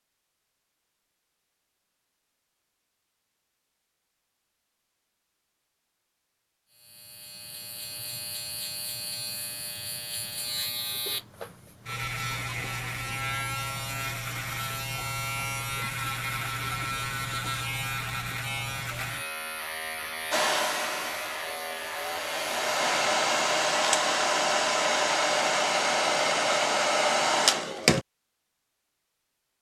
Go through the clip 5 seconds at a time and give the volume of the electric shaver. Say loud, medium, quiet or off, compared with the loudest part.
off, medium, loud, loud, loud, off.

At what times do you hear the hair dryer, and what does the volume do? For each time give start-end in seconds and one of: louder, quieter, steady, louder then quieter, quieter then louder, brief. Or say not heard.
20.3-28.1 louder.